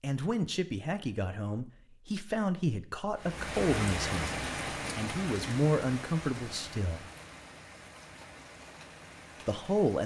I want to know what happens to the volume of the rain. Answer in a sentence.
The loudness of the rain goes down.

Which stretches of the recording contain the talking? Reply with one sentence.
The talking can be heard from 0.0 to 4.3 s, from 5.0 to 7.0 s and from 9.4 to 10.0 s.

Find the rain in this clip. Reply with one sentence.
You can hear the rain from 3.1 to 10.0 s.